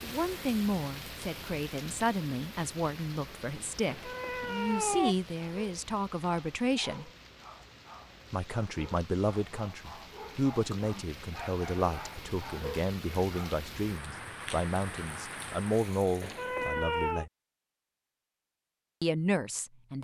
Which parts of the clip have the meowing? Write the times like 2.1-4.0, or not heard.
3.9-5.2, 16.2-17.2.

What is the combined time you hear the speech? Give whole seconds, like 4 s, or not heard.
17 s.